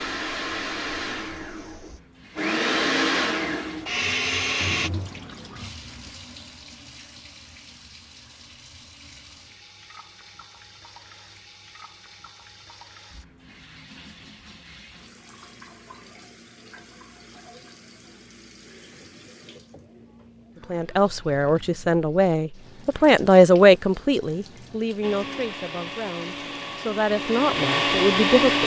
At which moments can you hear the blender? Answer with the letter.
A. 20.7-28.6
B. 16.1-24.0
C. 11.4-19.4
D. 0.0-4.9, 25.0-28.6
D.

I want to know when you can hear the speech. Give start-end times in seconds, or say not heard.
20.7-28.6.